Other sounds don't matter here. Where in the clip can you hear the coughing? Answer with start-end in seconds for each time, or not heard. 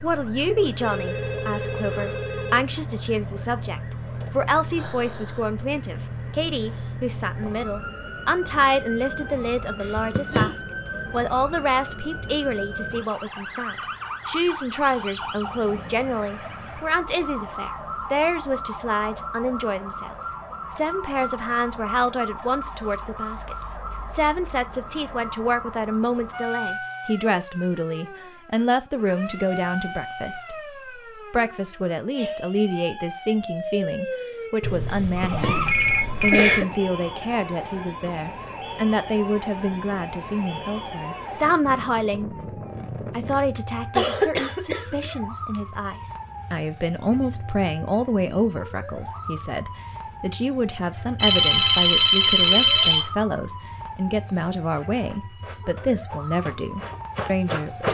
9.8-10.6, 34.9-36.8, 43.3-45.6.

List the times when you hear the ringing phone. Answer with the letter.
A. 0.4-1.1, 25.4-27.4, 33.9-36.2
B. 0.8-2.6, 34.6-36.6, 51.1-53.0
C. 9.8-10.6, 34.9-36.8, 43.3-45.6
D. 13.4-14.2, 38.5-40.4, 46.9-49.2
B.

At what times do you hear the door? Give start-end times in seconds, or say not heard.
not heard.